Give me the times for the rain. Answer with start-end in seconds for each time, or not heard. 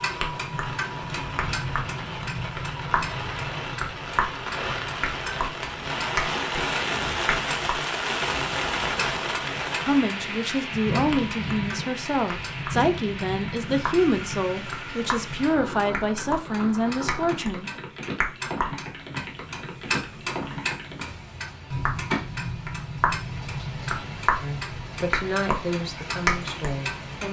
0.0-27.2.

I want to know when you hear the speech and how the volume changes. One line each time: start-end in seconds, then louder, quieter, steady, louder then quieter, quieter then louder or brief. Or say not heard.
9.8-17.7 steady
24.4-27.2 brief.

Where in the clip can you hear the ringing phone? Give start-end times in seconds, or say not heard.
not heard.